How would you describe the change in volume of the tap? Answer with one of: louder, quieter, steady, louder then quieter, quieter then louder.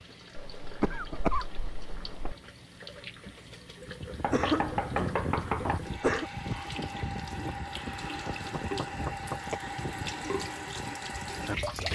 louder.